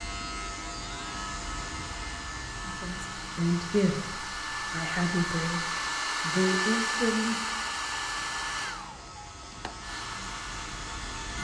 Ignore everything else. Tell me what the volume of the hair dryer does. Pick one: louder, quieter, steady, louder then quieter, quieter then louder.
louder then quieter.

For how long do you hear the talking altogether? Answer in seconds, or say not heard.
5 s.